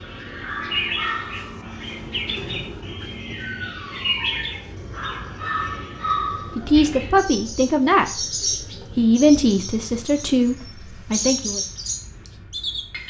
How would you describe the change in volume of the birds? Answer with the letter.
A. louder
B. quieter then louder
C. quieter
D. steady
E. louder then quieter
D.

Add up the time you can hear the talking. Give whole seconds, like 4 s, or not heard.
4 s.